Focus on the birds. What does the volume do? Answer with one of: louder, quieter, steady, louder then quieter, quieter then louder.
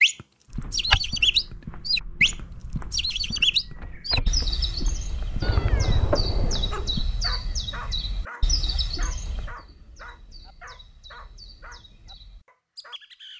quieter.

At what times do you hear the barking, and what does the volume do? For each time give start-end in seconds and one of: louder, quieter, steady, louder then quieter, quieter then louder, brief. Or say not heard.
6.7-13.0 quieter.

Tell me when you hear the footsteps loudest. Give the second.
1 s.